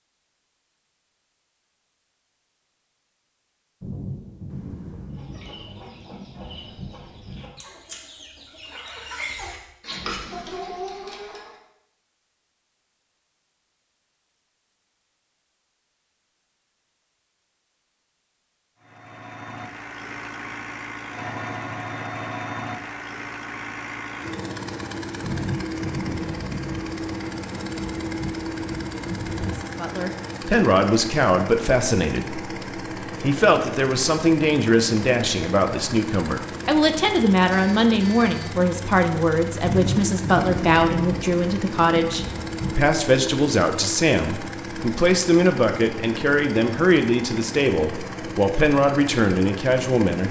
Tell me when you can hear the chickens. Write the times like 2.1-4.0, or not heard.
5.1-11.6.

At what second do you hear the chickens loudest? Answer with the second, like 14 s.
10 s.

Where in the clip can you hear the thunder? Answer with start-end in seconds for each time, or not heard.
3.8-7.5, 25.2-29.6, 39.6-42.9.